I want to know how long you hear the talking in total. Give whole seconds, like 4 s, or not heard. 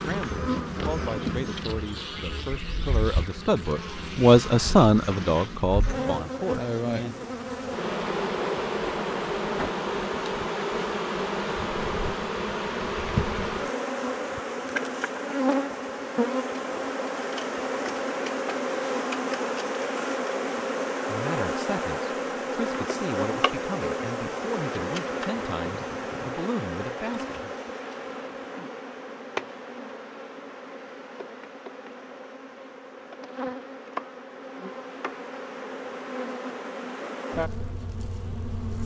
14 s.